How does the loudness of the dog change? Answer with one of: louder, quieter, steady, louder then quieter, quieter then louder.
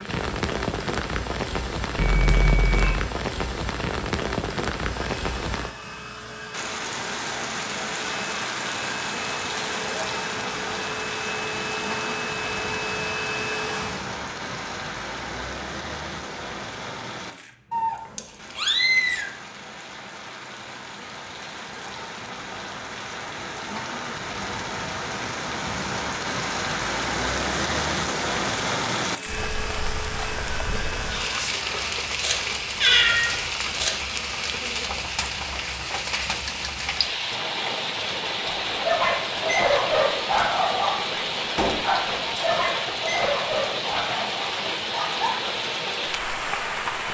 quieter.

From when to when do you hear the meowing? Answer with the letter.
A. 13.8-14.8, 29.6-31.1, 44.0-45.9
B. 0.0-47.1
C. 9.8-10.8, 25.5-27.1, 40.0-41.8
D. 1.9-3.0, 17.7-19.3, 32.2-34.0
D.